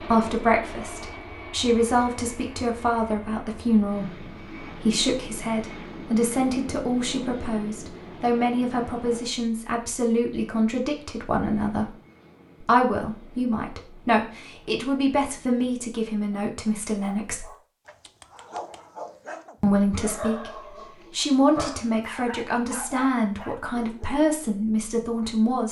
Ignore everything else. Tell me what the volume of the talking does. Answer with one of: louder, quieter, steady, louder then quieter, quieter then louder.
steady.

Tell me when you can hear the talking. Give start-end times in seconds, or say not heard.
0.0-11.9, 12.6-17.5, 19.6-25.6.